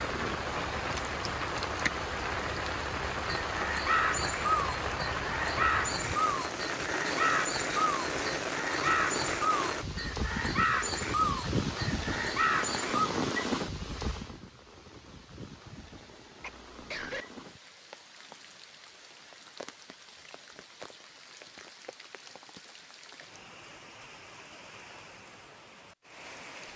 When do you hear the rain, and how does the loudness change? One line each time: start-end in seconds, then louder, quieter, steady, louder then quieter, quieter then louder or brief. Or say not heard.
0.0-26.7 quieter.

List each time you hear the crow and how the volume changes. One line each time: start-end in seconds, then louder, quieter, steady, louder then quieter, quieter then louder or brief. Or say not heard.
3.2-13.1 steady.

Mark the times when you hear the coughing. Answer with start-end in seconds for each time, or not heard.
16.4-17.2.